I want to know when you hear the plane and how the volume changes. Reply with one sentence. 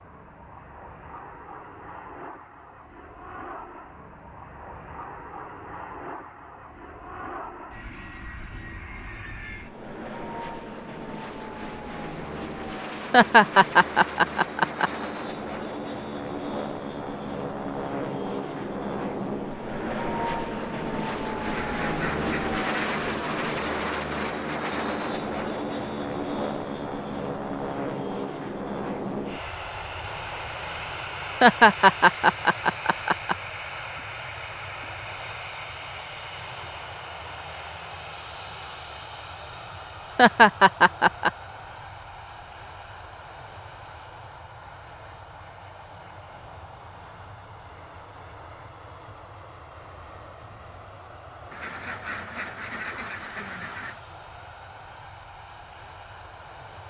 The plane can be heard from 0.0 to 56.8 s, getting louder then quieter.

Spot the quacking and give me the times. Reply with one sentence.
The quacking can be heard from 21.4 to 23.1 s and from 51.5 to 54.0 s.